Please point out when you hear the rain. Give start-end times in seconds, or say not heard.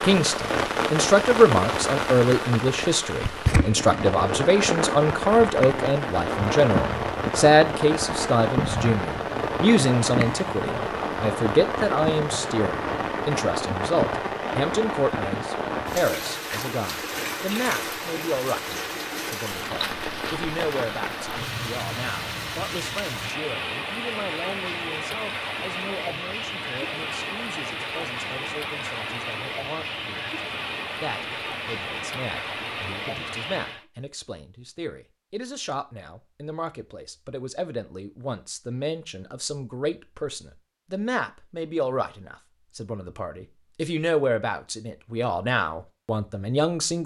0.0-33.9.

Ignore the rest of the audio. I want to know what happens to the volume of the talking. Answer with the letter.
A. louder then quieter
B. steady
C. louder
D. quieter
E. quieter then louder
E.